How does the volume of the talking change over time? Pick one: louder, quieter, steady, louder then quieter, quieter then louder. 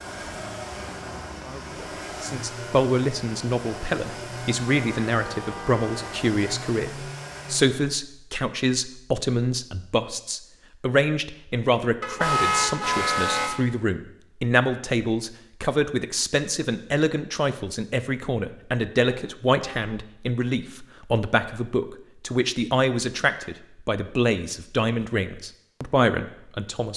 steady.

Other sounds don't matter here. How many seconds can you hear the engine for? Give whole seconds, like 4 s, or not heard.
8 s.